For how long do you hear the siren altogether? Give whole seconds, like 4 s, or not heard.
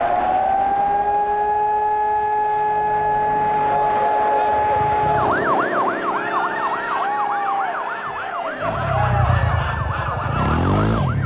11 s.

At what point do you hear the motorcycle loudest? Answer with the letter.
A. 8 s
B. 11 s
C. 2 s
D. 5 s
B.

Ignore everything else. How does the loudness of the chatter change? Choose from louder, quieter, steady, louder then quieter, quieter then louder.
louder.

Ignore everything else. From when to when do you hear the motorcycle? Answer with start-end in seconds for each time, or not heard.
2.4-5.5, 8.6-11.2.